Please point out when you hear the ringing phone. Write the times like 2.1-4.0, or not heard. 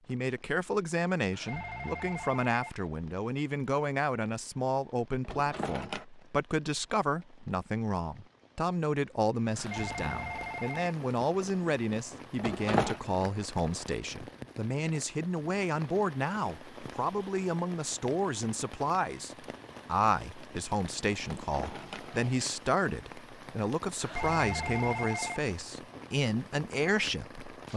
1.3-2.9, 9.6-10.9, 24.0-25.4.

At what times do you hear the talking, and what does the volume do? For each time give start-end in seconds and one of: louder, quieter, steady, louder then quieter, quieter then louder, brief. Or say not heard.
0.1-27.7 steady.